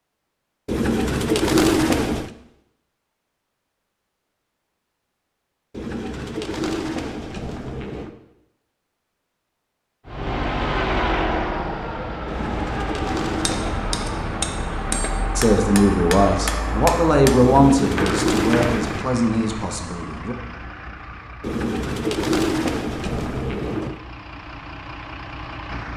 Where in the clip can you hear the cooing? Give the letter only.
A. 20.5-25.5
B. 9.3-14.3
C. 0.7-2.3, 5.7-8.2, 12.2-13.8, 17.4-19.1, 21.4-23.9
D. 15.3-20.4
C.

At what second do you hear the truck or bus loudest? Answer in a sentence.
The volume of the truck or bus peaks at 11 seconds.